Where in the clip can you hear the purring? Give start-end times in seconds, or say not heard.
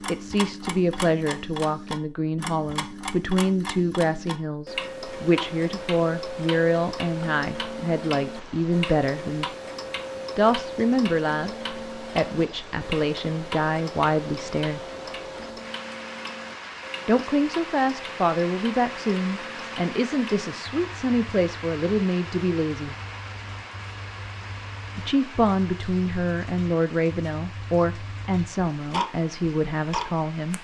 not heard.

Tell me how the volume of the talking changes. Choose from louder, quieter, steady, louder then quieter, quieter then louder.
steady.